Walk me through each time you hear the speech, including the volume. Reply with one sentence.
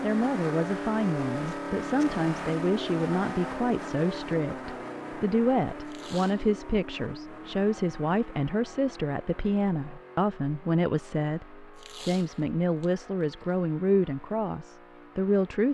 The speech can be heard from 0.0 to 15.6 s, at a steady volume.